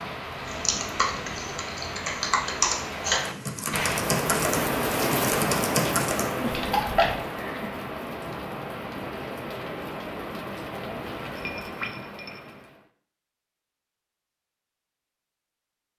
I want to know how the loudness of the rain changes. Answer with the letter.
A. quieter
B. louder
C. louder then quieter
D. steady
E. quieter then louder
C.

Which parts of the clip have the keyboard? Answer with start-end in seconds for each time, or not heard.
0.4-7.2.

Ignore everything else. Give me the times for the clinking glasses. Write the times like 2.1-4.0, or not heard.
11.3-12.6.